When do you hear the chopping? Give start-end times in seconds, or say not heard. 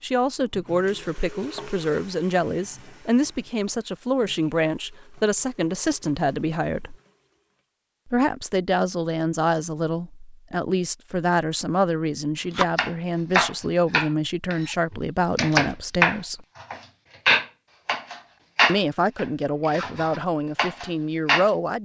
12.6-21.5.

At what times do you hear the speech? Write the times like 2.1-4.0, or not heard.
0.0-7.0, 8.1-16.4, 18.6-21.7.